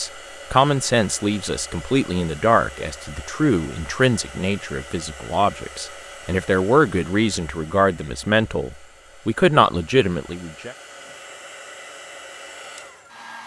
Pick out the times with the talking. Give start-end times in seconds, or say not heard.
0.0-10.8.